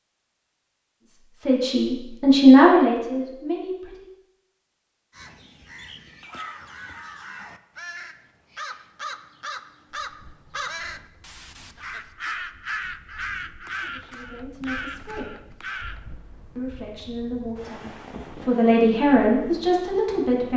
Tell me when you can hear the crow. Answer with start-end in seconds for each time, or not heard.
5.1-16.0.